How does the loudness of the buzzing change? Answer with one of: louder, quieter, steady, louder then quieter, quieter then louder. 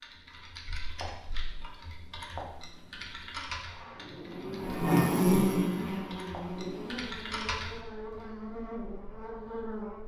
quieter.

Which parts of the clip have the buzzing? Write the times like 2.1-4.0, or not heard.
3.6-10.0.